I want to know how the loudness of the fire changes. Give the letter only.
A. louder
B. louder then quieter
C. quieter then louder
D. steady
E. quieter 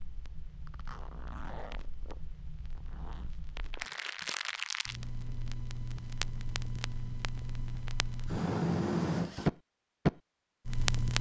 A.